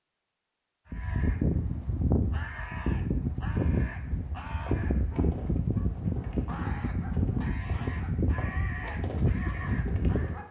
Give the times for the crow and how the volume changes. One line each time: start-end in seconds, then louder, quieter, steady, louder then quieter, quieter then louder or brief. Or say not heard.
0.9-10.4 steady.